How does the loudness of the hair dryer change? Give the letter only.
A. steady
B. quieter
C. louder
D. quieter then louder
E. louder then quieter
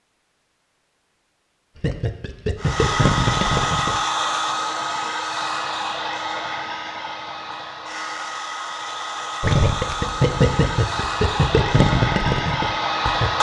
D.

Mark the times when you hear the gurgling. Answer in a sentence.
The gurgling can be heard from 1.8 to 4.0 s and from 9.4 to 13.3 s.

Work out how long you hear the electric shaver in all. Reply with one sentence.
The electric shaver can't be heard in this clip.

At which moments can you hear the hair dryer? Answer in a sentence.
The hair dryer can be heard from 2.5 to 13.3 s.